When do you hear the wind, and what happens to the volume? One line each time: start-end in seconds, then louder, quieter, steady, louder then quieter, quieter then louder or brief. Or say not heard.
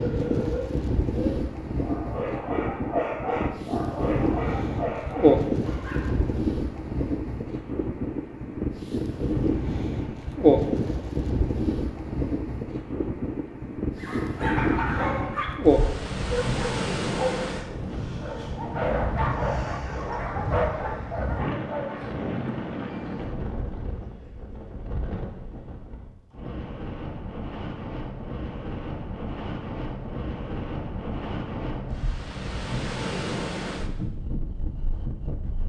0.0-35.6 quieter.